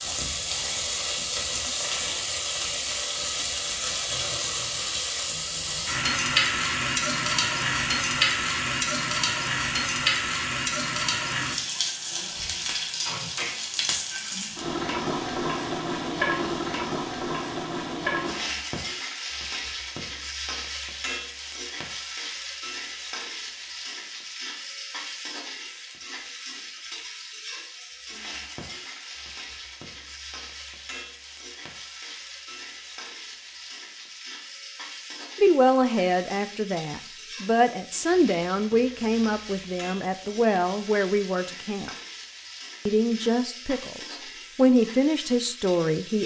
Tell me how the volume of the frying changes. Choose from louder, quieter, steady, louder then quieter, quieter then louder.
quieter.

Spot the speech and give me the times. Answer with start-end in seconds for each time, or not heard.
35.4-42.0, 42.9-46.2.